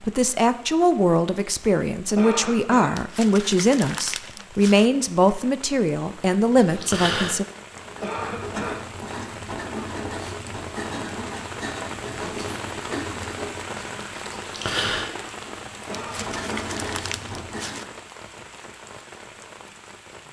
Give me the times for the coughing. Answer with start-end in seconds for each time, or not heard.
2.1-3.0, 8.0-8.8, 15.8-16.8.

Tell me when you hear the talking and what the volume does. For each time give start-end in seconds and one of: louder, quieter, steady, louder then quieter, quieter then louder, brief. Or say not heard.
0.0-7.5 steady.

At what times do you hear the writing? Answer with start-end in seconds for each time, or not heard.
6.6-17.9.